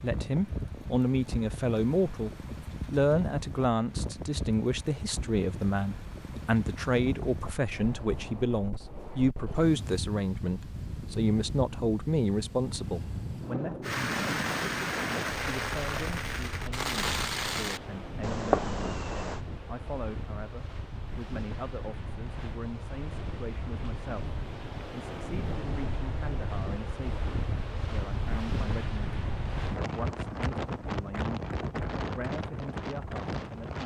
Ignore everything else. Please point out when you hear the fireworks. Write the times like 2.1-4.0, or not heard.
13.8-19.4.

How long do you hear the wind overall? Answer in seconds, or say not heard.
34 s.